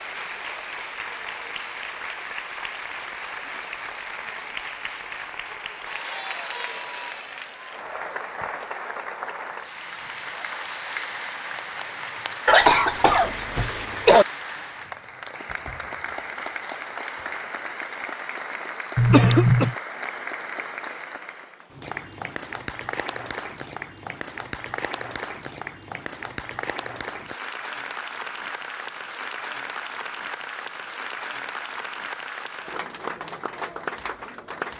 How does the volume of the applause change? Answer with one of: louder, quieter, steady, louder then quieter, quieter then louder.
steady.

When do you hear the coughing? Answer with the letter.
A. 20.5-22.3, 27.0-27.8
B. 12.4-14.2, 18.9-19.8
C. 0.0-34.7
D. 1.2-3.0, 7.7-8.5
B.